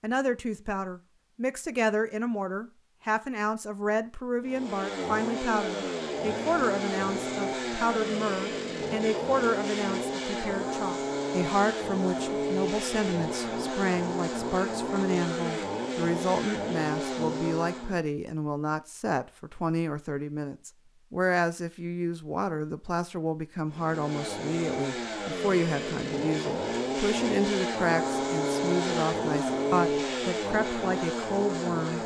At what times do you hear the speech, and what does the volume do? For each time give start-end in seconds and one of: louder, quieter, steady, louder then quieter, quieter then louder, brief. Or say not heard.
0.0-32.0 steady.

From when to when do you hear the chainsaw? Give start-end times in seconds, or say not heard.
4.4-18.0, 23.6-32.0.